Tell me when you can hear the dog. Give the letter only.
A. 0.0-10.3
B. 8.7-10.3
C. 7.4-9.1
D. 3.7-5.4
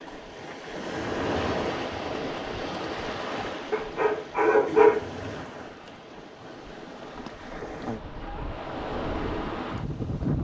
D.